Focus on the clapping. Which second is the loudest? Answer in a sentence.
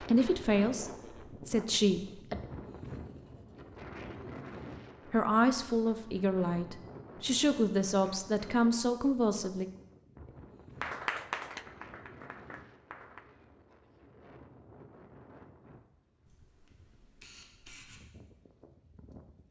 The volume of the clapping peaks at 11 seconds.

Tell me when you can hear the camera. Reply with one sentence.
The camera can be heard from 16.4 to 18.0 s.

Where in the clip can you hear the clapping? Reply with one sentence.
You can hear the clapping from 10.8 to 13.2 s.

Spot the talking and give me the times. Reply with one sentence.
You can hear the talking from 0.0 to 2.4 s and from 5.1 to 9.7 s.